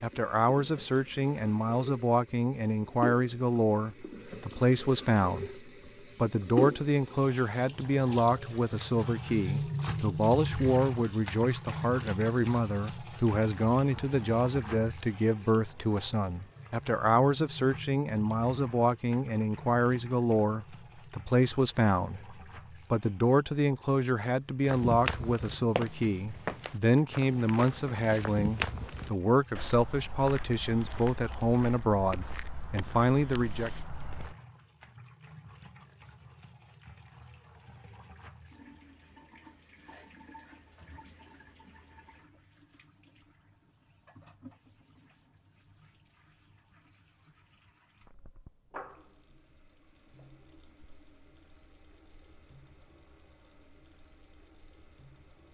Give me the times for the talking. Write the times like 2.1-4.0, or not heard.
0.0-33.7.